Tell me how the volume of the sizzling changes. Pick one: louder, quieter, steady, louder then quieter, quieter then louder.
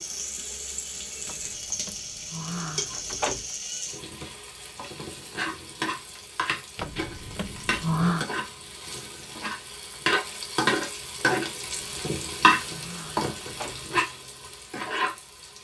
louder.